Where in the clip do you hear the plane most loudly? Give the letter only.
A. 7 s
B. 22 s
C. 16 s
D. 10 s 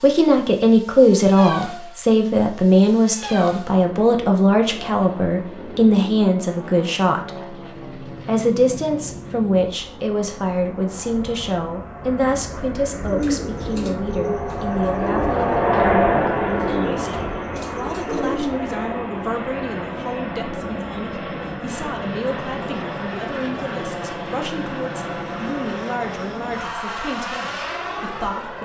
C.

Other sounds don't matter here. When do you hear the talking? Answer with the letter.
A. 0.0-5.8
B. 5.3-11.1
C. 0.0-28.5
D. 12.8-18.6
C.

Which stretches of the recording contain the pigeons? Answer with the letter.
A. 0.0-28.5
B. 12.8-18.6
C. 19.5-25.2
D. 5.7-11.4
B.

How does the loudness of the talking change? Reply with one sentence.
The volume of the talking goes down.